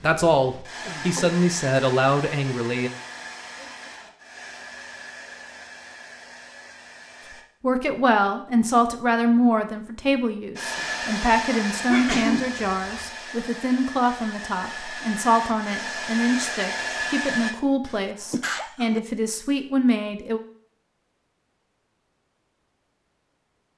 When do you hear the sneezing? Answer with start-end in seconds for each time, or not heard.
0.8-1.4, 11.9-13.1, 17.9-19.0.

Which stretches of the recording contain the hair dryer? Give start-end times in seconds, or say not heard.
0.0-7.5, 10.6-17.6.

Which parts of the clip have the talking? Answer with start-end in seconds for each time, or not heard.
0.0-2.9, 7.6-20.4.